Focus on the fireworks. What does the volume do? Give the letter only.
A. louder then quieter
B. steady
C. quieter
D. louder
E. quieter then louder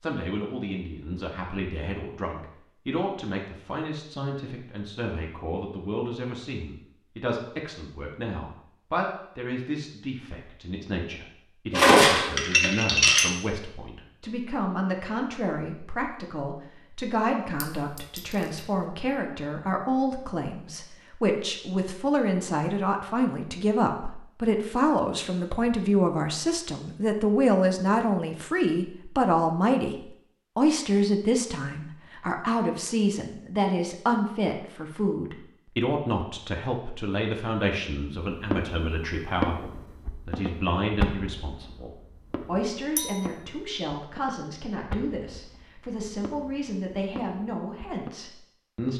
C.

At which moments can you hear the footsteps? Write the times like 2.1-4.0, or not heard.
not heard.